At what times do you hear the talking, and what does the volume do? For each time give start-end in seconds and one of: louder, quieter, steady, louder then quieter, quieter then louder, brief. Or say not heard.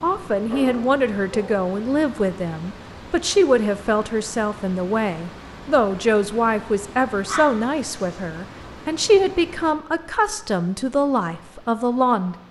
0.0-12.3 steady.